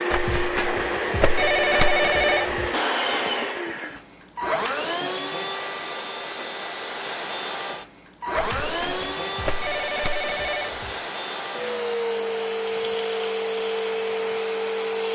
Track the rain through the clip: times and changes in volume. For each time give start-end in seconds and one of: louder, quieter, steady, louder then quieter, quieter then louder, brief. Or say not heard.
not heard.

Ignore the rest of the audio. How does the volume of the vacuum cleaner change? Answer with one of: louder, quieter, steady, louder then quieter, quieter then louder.
steady.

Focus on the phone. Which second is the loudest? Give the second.
2 s.